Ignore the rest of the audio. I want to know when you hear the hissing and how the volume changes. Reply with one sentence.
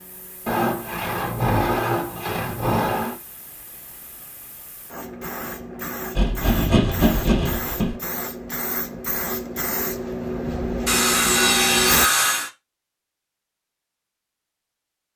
The hissing can be heard from 0.0 to 12.1 s, getting louder.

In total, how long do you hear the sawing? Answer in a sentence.
The sawing can be heard for 6 seconds in total.